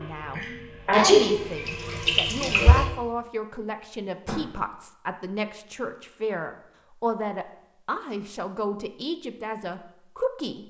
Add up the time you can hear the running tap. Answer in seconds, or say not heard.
3 s.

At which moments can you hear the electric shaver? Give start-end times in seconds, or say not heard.
not heard.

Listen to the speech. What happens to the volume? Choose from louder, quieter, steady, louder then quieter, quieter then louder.
steady.